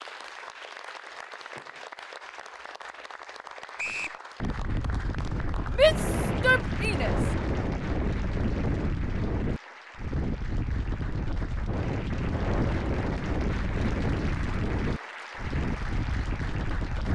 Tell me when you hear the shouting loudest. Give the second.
6 s.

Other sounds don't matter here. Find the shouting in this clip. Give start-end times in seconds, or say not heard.
5.7-7.2.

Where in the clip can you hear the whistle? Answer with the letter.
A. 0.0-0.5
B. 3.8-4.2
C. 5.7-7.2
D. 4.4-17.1
B.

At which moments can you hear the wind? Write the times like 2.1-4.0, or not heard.
4.4-17.1.